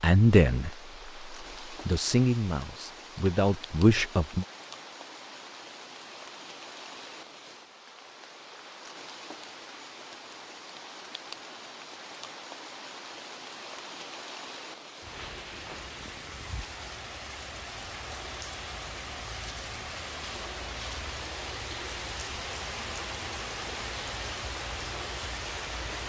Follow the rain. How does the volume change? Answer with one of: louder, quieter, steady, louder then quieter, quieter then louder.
louder.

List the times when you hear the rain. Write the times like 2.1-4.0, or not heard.
0.0-26.0.